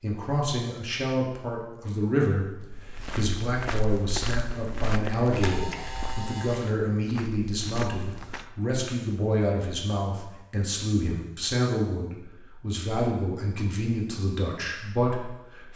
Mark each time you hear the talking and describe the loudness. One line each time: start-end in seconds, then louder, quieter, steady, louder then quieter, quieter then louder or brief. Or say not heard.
0.0-15.7 steady.